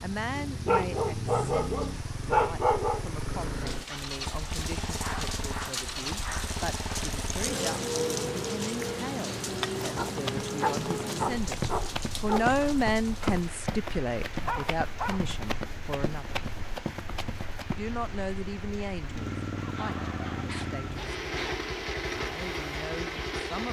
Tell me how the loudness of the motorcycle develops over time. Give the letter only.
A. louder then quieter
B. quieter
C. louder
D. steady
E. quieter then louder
E.